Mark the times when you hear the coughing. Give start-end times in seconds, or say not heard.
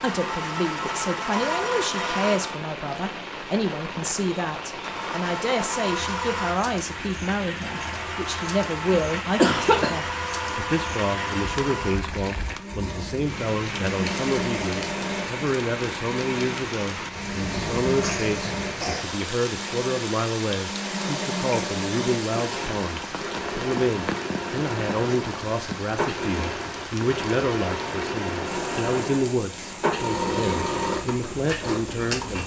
8.9-9.9, 18.0-19.1.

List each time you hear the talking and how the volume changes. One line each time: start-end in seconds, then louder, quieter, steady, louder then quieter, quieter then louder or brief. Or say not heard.
0.0-32.4 steady.